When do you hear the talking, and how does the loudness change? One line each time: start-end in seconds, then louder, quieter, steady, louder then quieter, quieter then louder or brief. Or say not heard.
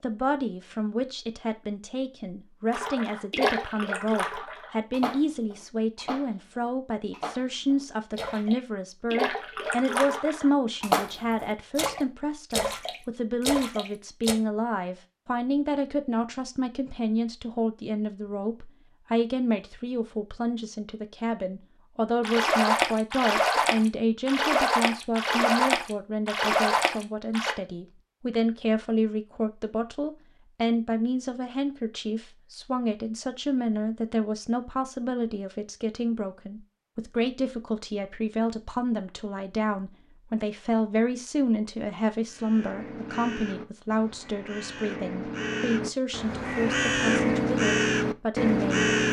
0.0-48.9 steady.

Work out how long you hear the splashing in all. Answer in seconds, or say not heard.
17 s.